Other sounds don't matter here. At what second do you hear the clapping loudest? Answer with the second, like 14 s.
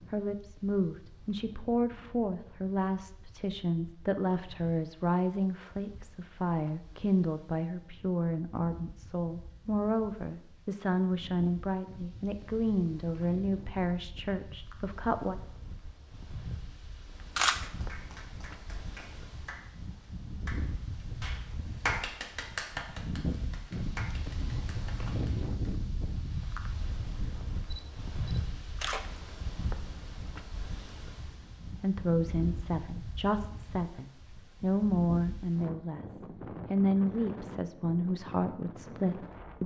22 s.